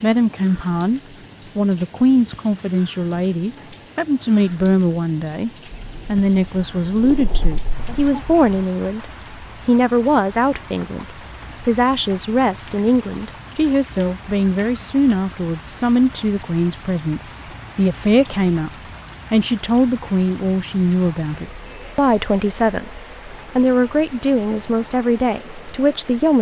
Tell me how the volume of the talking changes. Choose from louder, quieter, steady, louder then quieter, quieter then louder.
steady.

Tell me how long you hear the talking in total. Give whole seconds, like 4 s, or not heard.
26 s.